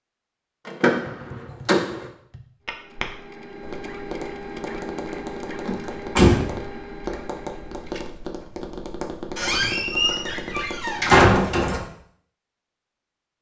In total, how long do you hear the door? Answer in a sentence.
The door can be heard for 5 seconds in total.